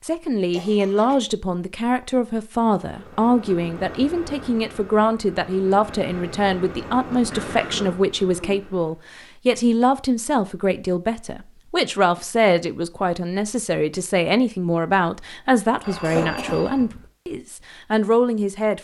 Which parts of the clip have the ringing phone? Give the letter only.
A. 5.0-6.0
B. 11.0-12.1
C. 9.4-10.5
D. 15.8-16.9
D.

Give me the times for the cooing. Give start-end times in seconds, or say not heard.
not heard.